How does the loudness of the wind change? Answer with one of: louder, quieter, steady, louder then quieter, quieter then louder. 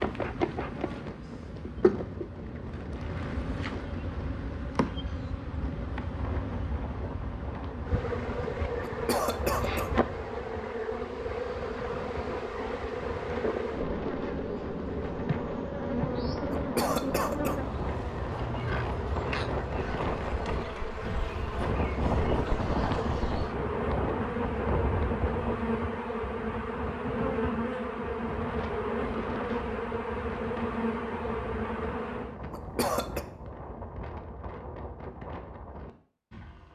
louder then quieter.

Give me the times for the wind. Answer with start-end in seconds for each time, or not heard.
0.1-36.7.